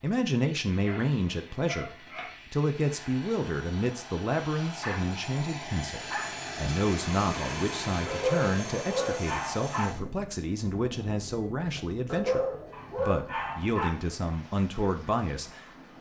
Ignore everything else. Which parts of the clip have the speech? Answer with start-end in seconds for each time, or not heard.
0.0-15.6.